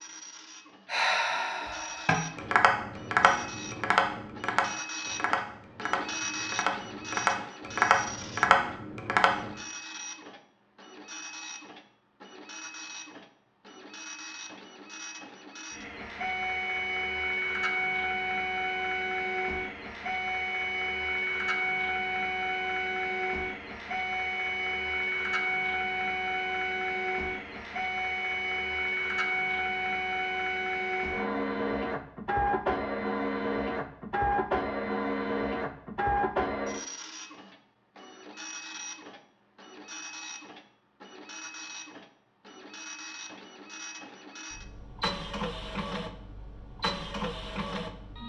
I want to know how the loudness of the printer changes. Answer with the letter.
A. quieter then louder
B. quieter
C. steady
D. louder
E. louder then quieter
E.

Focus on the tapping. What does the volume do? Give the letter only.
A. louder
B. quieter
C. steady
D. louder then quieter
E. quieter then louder
E.